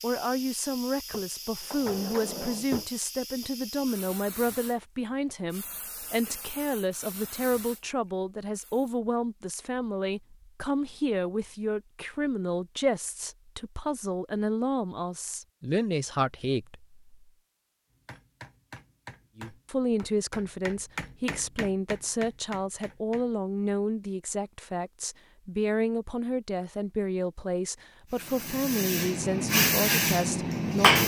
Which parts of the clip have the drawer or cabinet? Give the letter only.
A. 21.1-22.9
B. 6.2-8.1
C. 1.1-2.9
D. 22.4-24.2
C.